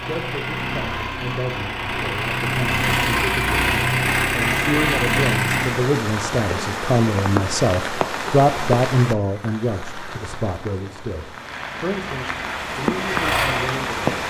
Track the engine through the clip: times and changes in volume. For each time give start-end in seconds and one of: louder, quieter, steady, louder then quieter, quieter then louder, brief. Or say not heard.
0.0-5.8 louder
11.3-14.2 brief.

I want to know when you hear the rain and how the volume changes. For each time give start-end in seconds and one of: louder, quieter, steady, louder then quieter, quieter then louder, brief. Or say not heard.
5.5-14.2 quieter then louder.